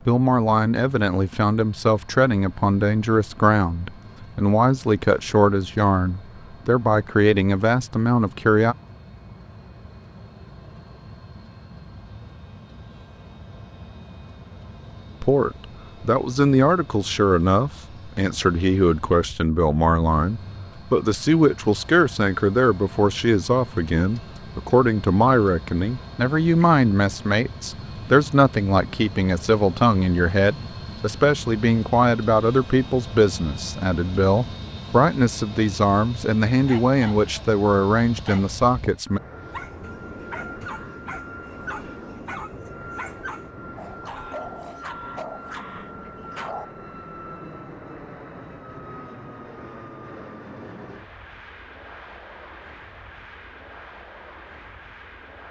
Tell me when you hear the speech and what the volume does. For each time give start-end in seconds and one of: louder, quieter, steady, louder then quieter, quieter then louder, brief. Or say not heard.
0.1-8.8 steady
15.2-39.2 steady.